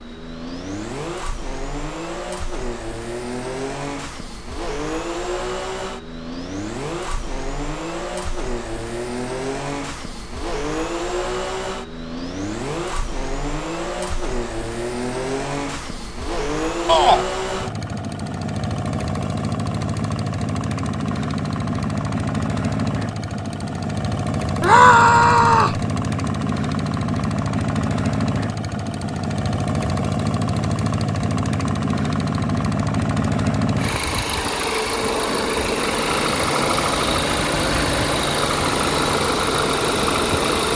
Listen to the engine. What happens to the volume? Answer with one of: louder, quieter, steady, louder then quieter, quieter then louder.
louder.